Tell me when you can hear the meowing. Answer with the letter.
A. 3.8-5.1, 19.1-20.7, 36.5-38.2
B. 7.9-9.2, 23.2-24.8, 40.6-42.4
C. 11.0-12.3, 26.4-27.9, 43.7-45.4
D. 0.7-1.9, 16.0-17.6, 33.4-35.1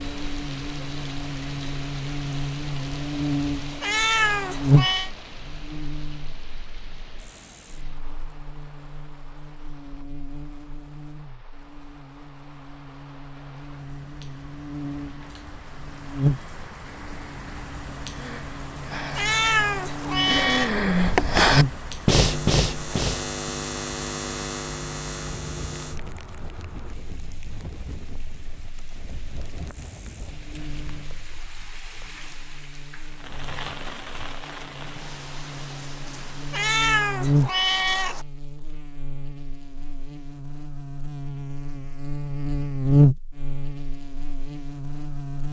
A.